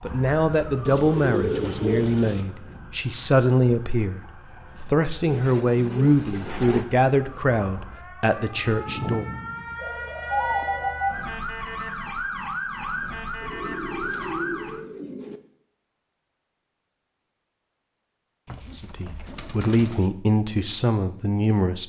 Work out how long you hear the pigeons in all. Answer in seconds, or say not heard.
8 s.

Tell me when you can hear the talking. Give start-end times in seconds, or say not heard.
0.0-9.3, 18.8-21.8.